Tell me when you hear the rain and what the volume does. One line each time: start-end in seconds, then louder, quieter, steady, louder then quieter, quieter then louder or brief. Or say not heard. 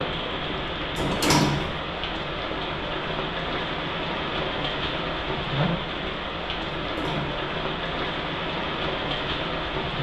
0.0-9.9 steady.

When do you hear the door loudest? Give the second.
1 s.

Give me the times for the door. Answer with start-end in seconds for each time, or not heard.
0.9-1.8, 6.7-7.4.